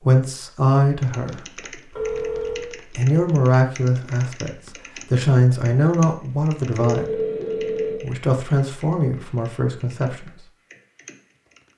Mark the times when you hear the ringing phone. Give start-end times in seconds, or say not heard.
1.9-2.7, 6.8-8.0.